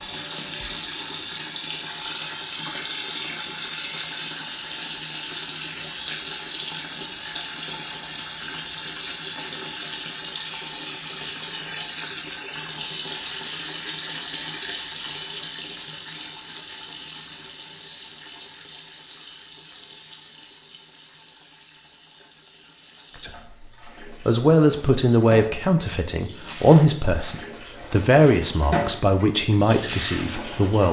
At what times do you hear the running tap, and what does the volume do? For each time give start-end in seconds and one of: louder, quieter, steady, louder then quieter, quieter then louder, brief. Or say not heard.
0.0-30.8 quieter then louder.